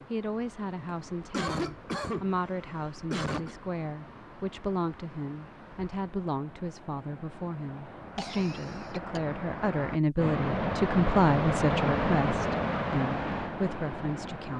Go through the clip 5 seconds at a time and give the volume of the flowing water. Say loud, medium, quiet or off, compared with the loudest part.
quiet, quiet, loud.